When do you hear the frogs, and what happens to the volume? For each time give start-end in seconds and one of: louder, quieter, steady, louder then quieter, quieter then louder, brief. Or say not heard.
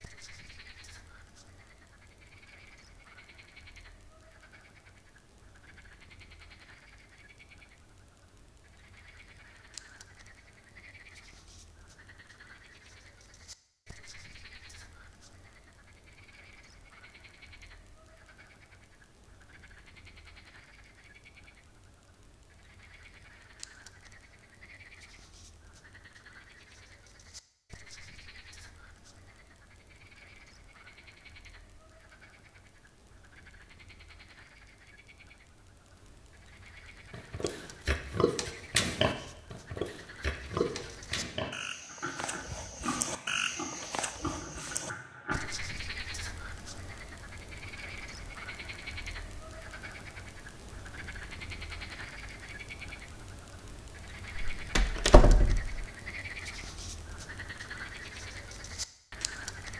0.0-59.7 louder.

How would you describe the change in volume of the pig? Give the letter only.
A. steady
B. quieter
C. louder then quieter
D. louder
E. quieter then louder
B.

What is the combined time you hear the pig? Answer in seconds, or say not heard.
8 s.